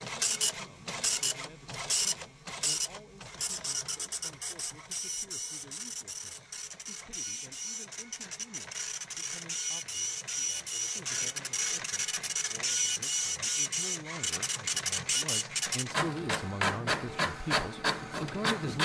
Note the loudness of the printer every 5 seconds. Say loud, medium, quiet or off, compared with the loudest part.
loud, medium, loud, loud.